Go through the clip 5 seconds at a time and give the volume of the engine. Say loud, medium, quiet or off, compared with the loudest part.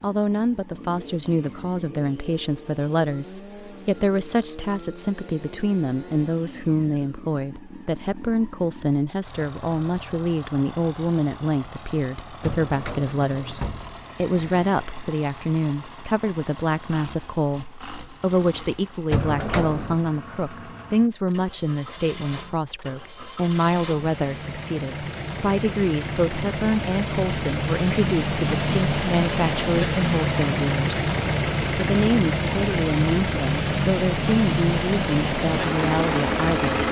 quiet, quiet, quiet, quiet, quiet, loud, loud, loud.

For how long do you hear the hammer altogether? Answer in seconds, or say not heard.
not heard.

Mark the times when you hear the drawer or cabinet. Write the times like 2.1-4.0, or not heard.
12.4-14.7, 19.1-20.0.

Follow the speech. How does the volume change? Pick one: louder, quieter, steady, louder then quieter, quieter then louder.
steady.